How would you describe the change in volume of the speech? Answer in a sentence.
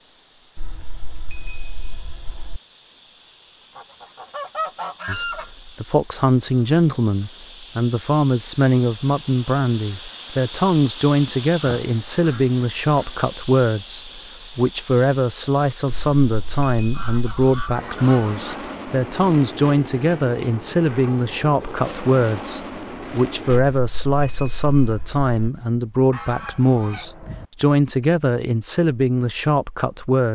The volume of the speech stays about the same.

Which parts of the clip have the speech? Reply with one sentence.
The speech can be heard from 5.0 to 30.3 s.